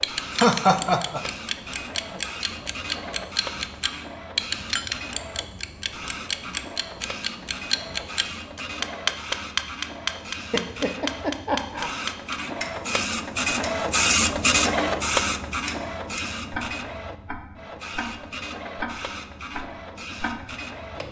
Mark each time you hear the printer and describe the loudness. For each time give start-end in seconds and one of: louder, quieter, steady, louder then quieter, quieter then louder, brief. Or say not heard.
0.0-21.0 louder then quieter.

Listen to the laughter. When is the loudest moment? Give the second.
1 s.